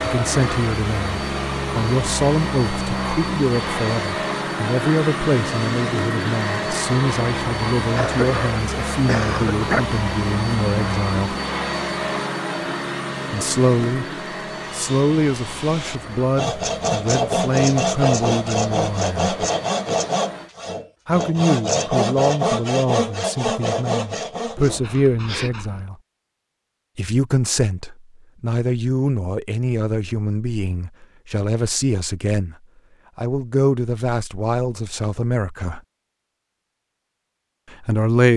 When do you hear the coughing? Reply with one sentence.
You can hear the coughing from 7.9 to 9.8 s and from 24.6 to 25.9 s.